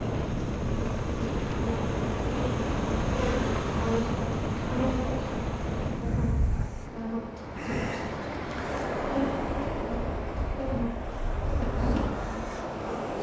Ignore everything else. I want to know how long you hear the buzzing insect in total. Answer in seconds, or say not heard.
13 s.